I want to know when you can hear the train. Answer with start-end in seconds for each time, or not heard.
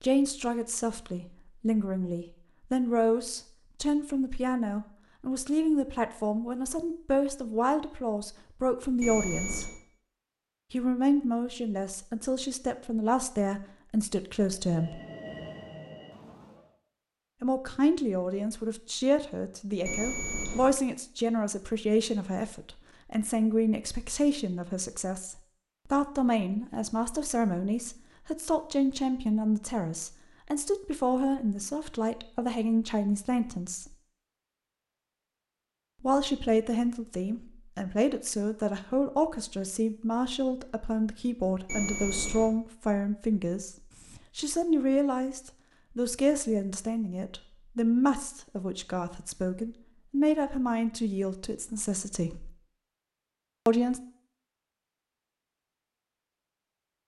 14.4-16.8.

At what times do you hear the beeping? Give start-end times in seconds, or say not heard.
9.0-9.8, 19.9-20.8, 41.6-42.5.